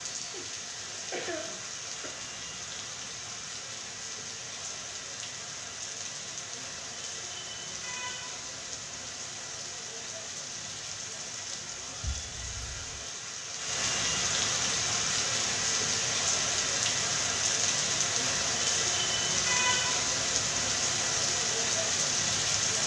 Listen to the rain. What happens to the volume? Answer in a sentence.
The volume of the rain goes up.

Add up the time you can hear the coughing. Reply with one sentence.
You can hear the coughing for 2 seconds altogether.